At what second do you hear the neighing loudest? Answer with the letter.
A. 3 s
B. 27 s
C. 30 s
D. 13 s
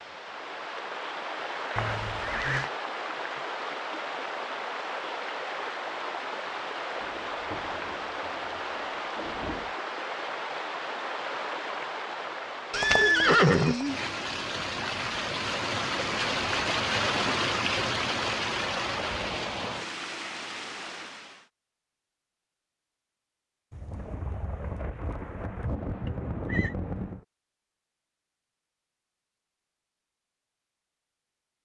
D.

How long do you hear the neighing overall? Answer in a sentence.
The neighing can be heard for 3 seconds in total.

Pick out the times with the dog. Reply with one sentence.
The dog can't be heard in this clip.